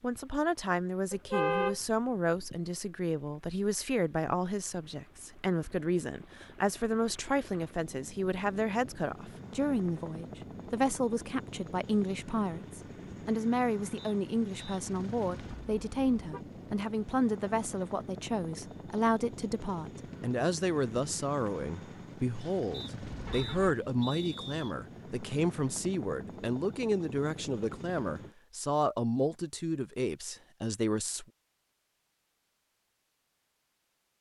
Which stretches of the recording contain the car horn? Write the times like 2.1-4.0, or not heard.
1.1-1.8, 15.5-16.4, 23.1-23.8.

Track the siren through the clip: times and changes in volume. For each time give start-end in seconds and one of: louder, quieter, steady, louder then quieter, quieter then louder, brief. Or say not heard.
not heard.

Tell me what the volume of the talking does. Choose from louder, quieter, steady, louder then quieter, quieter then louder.
steady.